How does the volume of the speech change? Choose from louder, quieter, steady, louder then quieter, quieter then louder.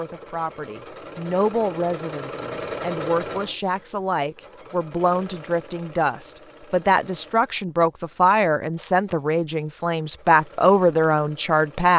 louder.